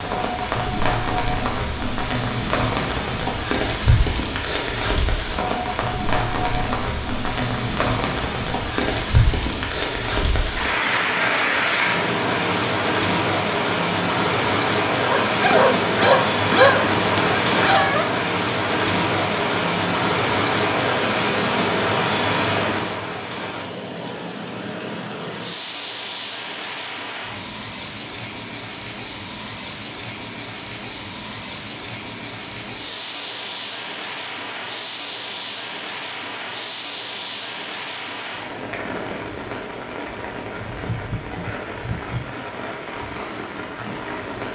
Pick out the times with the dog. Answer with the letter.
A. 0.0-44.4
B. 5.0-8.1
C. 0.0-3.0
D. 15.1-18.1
D.